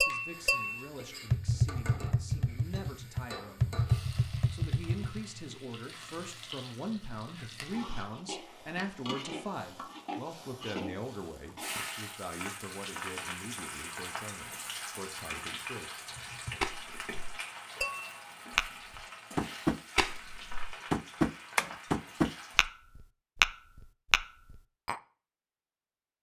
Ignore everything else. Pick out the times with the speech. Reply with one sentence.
The speech can be heard from 0.0 to 16.1 s.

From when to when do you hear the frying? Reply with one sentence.
The frying can be heard from 0.0 to 22.7 s.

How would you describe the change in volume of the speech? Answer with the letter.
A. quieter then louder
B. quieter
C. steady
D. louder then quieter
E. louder
D.